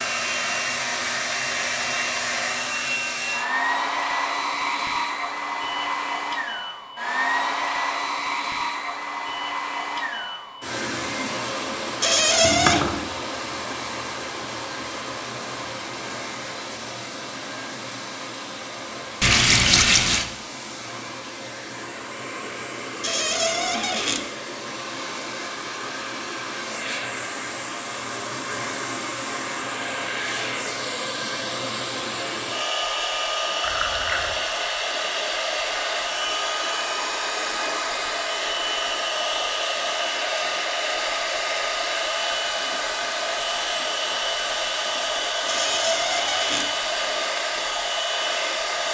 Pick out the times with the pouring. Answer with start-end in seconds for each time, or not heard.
12.4-13.1, 19.2-20.2, 33.6-34.4.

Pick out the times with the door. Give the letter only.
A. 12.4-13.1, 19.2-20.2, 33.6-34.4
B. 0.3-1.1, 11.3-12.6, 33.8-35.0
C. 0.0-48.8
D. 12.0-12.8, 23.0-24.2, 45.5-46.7
D.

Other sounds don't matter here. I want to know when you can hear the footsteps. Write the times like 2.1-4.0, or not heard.
not heard.